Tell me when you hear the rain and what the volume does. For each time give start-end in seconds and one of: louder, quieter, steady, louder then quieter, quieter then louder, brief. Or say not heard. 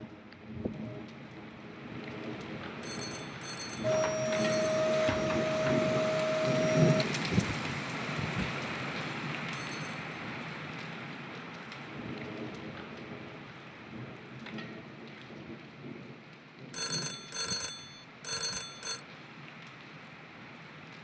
0.0-20.9 louder then quieter.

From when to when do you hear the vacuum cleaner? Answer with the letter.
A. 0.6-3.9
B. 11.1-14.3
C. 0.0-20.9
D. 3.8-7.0
D.